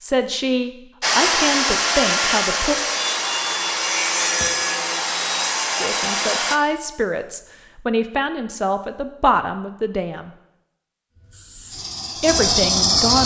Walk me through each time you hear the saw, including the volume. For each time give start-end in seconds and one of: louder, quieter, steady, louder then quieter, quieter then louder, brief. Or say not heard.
1.0-6.6 steady.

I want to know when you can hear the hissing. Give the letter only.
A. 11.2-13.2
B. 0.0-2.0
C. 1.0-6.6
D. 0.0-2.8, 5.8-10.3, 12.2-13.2
A.